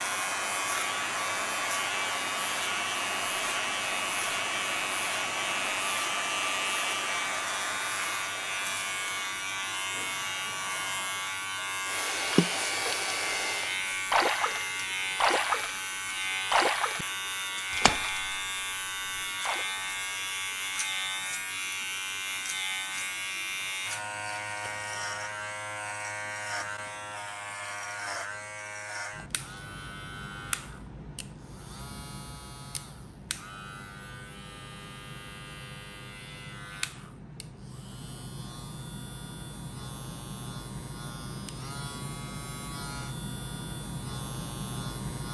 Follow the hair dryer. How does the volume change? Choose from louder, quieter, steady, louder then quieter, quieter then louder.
quieter then louder.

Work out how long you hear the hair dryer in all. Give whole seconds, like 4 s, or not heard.
14 s.